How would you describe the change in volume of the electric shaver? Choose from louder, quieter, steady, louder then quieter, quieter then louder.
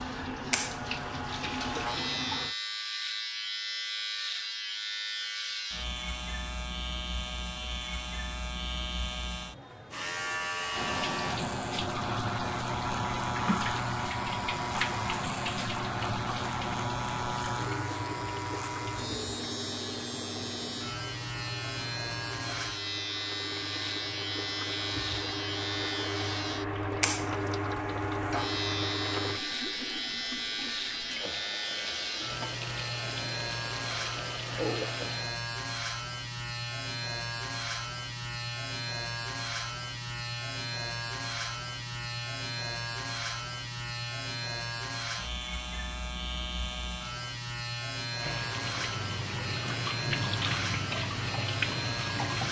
steady.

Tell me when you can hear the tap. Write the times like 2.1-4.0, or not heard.
0.0-2.5, 10.7-35.4, 48.1-52.4.